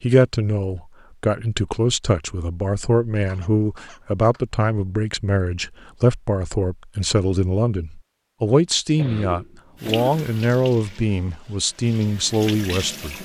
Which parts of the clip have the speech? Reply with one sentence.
The speech can be heard from 0.0 to 13.2 s.